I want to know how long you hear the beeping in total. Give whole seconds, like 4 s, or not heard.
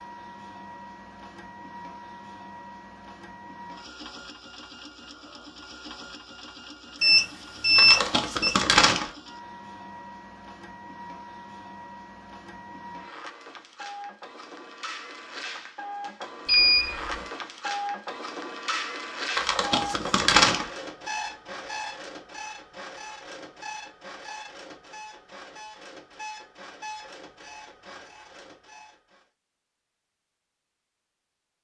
2 s.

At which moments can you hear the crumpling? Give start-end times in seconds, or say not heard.
7.8-9.1, 19.4-20.7.